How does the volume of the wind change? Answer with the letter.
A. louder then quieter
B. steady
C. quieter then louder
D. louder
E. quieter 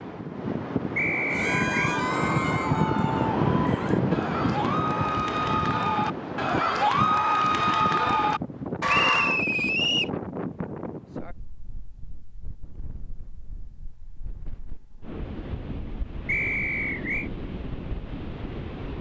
C.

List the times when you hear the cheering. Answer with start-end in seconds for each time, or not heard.
1.2-9.4.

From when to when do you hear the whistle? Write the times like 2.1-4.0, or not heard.
0.9-1.9, 8.8-10.1, 16.2-17.3.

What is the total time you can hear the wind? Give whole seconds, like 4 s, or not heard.
19 s.